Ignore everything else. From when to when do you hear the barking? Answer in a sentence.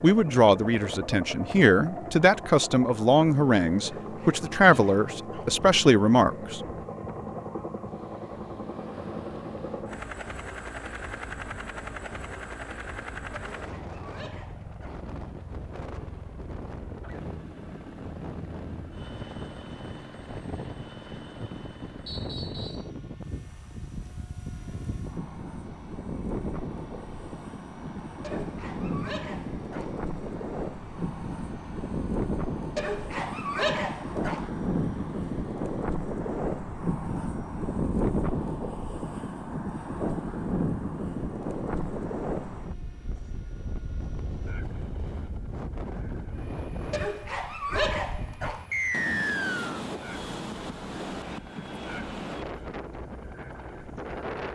The barking can be heard from 3.8 to 5.5 s, from 13.6 to 15.1 s, from 28.2 to 29.9 s, from 32.8 to 34.5 s and from 46.9 to 48.6 s.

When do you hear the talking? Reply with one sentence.
The talking can be heard from 0.0 to 6.6 s.